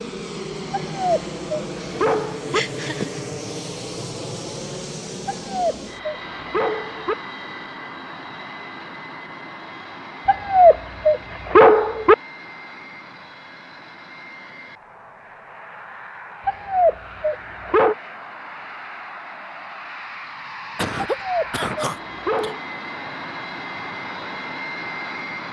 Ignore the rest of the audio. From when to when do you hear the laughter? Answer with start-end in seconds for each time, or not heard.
1.8-3.2, 20.8-22.6.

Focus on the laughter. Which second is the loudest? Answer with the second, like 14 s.
21 s.